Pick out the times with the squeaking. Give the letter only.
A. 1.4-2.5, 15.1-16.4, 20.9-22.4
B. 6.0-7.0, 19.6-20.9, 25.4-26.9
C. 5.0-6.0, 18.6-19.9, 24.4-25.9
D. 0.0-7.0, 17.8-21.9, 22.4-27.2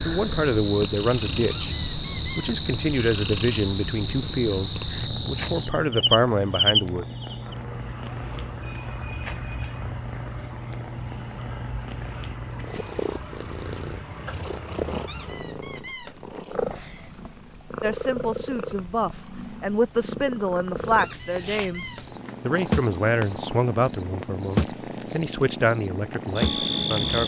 A.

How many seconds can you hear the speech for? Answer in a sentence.
You can hear the speech for 16 seconds altogether.